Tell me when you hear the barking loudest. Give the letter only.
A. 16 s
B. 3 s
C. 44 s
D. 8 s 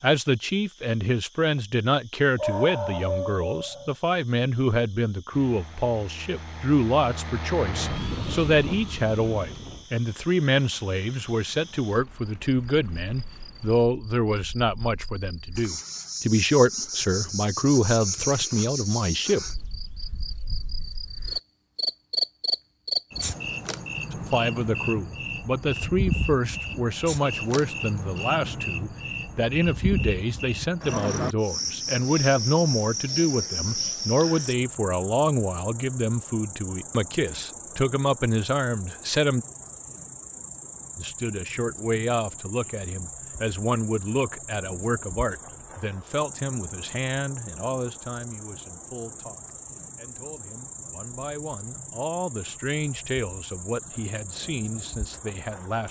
B.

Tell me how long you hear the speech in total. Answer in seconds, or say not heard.
50 s.